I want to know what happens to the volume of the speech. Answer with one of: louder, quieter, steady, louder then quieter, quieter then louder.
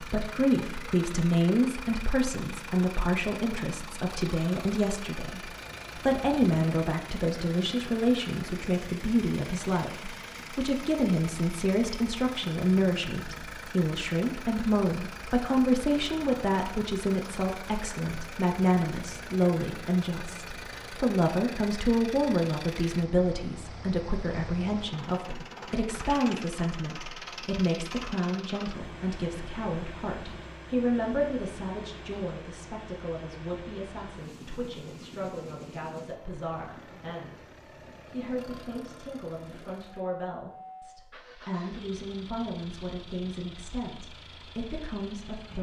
quieter.